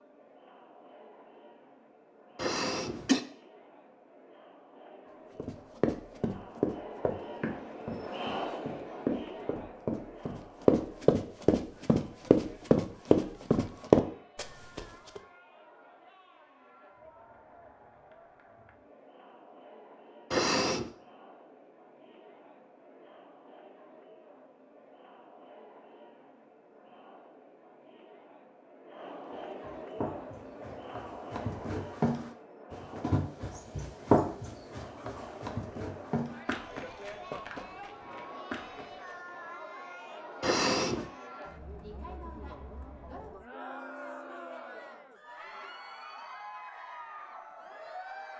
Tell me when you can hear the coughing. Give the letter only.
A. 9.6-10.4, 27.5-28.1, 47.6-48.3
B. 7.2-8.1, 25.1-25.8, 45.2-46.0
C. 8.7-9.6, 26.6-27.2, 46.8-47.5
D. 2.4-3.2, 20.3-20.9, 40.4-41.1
D.